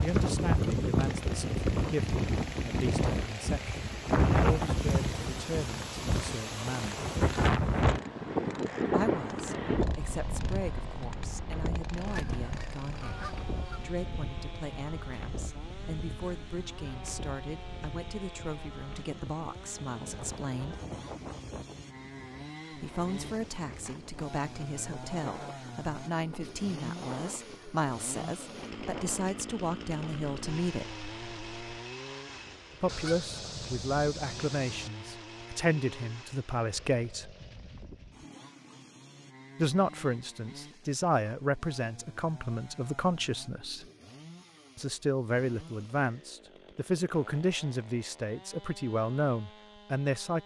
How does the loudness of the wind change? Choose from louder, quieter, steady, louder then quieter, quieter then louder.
quieter.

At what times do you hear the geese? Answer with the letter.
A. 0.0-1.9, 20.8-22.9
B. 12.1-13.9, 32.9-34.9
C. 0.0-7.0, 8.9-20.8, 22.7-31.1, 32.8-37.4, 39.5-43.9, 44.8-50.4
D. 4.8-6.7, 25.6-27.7
B.